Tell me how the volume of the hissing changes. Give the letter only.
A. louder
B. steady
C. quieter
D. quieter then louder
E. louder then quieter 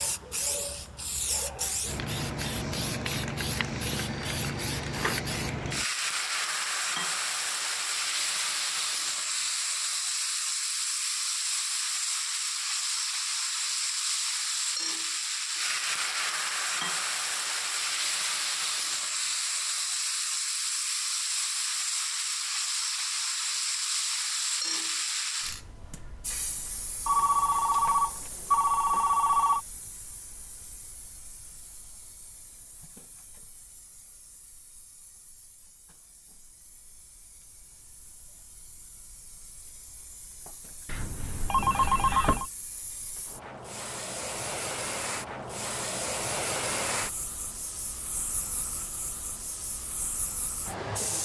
D.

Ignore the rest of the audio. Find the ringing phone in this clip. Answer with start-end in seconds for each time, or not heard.
4.0-5.2, 27.1-29.6, 40.9-42.5.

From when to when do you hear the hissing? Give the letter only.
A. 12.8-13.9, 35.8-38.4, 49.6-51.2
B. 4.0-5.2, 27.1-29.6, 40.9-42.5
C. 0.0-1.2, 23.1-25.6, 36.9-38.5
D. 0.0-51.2
D.